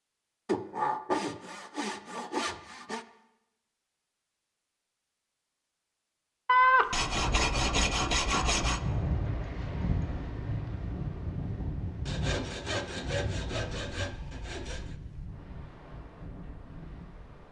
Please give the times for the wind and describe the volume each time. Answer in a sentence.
You can hear the wind from 8.8 to 17.4 s, getting quieter.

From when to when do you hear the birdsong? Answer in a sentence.
You can't hear the birdsong here.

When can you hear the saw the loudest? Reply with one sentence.
The loudest moment of the saw is at 7 seconds.